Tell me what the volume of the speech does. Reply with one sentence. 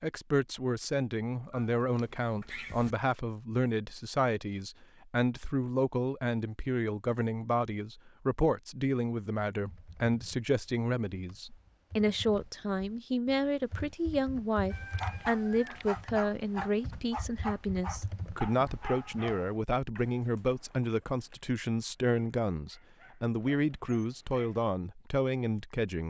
The volume of the speech stays about the same.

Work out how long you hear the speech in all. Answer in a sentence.
The speech can be heard for 26 seconds in total.